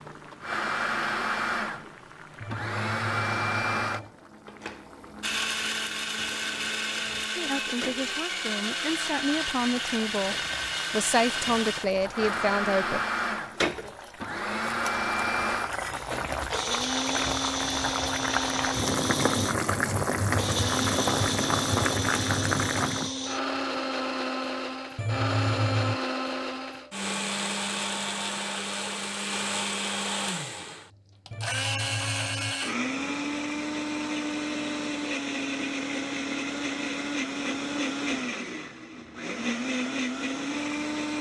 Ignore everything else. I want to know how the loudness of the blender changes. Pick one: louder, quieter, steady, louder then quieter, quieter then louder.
steady.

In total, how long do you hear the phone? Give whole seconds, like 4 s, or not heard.
4 s.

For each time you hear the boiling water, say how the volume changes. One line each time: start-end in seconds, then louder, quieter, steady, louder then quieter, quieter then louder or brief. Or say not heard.
0.0-23.1 louder.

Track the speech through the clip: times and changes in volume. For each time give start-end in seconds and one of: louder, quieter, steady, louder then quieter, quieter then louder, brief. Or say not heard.
7.3-13.0 louder.